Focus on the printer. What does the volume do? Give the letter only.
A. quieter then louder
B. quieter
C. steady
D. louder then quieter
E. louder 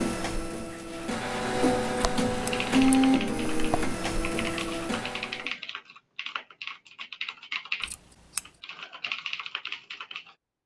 D.